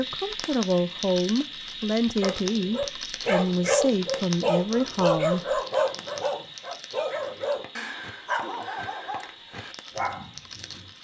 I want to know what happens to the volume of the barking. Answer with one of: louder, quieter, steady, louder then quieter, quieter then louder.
quieter.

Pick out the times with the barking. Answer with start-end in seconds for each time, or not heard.
2.2-10.9.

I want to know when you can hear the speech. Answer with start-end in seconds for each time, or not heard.
0.0-5.6.